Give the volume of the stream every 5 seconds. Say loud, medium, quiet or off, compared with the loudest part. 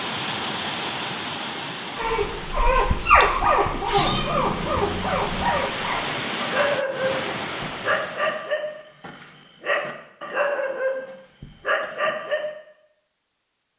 loud, loud, off.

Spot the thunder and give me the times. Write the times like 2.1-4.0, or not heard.
not heard.